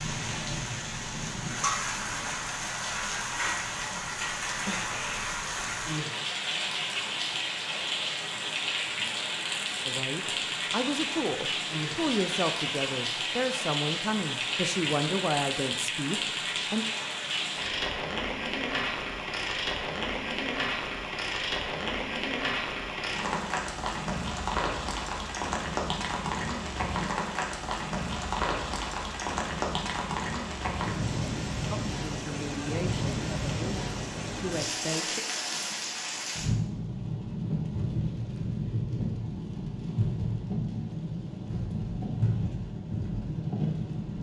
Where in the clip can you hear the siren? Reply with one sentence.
The siren can't be heard in this clip.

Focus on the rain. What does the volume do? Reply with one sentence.
The loudness of the rain stays about the same.